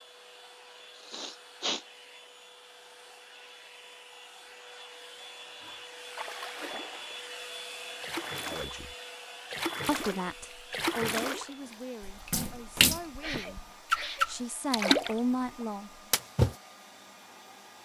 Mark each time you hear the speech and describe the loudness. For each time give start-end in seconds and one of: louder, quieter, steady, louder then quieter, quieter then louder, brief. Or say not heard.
8.4-8.9 brief
9.8-15.9 quieter then louder.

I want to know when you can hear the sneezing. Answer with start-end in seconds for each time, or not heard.
0.9-1.9, 13.2-14.2.